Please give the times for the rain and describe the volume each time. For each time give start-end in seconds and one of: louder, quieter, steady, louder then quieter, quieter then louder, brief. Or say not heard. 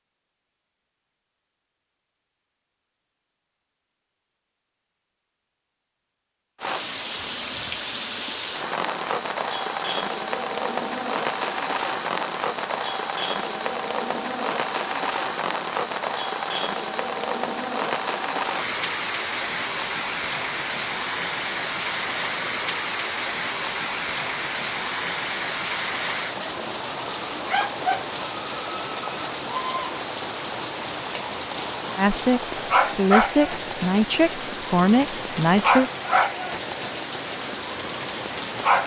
6.6-38.8 steady.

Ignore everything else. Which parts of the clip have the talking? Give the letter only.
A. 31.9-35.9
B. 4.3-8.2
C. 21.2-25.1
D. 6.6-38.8
A.